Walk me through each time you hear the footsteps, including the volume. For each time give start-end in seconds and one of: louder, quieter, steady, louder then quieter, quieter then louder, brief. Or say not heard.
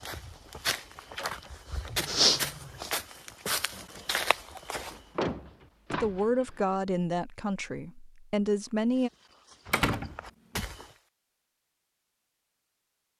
0.0-5.0 louder then quieter
8.9-10.9 brief.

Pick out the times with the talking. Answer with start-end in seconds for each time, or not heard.
5.9-9.1.